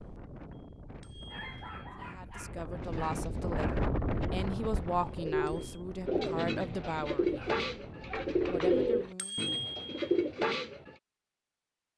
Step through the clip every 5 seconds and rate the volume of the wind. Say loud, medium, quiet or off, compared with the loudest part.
loud, medium, off.